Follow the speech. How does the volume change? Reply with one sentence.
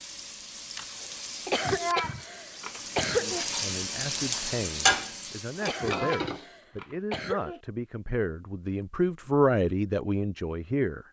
The volume of the speech goes up.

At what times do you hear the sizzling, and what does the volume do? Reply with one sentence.
The sizzling can be heard from 0.0 to 6.5 s, getting louder then quieter.